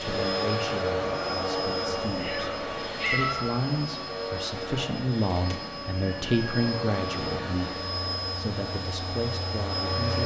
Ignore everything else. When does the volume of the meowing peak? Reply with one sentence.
The loudest moment of the meowing is at 3 seconds.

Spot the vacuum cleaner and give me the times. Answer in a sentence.
The vacuum cleaner can be heard from 0.0 to 10.2 s.